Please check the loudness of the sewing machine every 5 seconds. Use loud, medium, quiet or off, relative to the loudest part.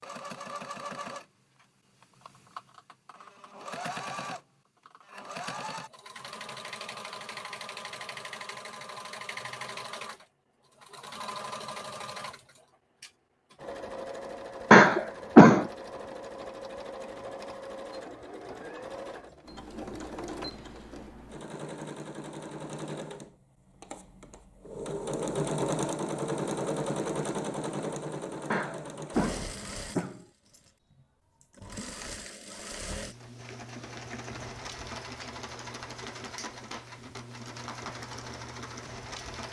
medium, medium, medium, medium, medium, loud, medium, medium.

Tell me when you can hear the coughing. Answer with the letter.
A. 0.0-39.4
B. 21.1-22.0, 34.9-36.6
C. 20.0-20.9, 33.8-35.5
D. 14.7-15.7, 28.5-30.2
D.